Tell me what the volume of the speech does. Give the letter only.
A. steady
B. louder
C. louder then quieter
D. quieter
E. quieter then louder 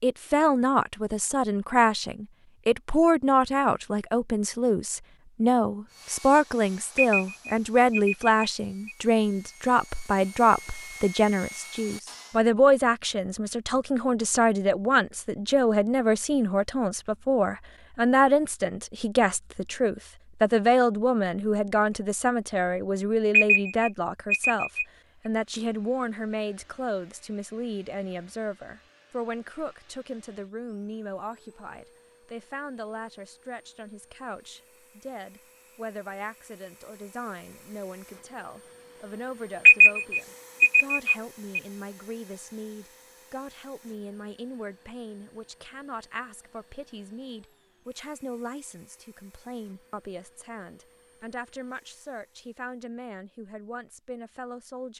D.